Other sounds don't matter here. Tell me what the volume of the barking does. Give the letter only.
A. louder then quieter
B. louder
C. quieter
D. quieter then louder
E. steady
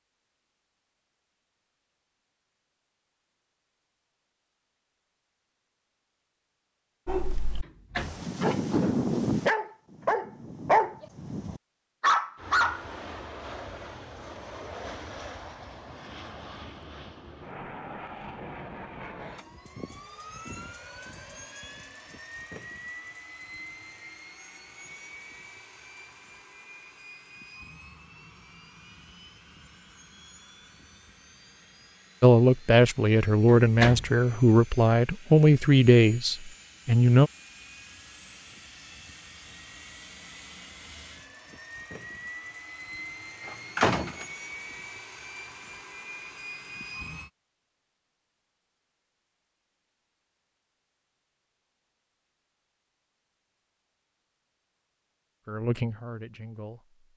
B.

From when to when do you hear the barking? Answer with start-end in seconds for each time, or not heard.
7.0-12.8.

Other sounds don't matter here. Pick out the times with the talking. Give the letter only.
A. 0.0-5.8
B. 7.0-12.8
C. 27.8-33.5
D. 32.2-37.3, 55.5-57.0
D.